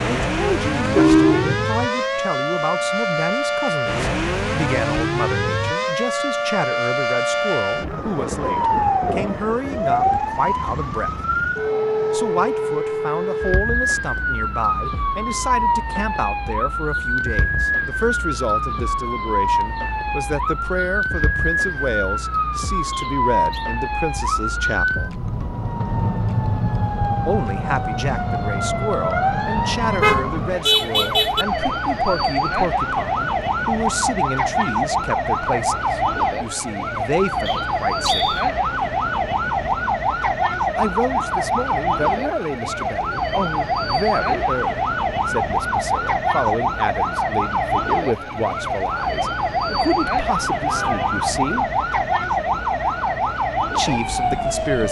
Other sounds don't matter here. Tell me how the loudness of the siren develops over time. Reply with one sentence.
The loudness of the siren stays about the same.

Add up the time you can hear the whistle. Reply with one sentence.
The whistle can be heard for 2 seconds in total.